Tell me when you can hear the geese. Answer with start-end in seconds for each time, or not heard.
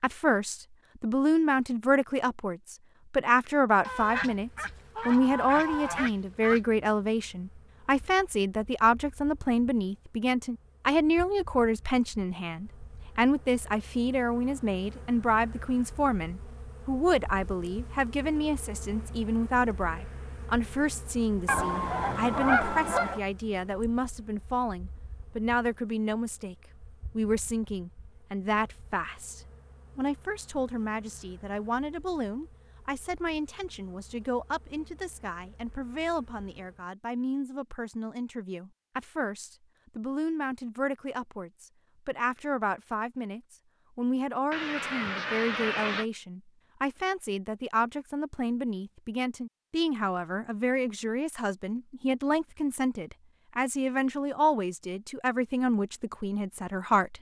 3.8-6.6, 21.4-23.2, 44.5-46.0.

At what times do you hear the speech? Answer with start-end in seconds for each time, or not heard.
0.0-57.1.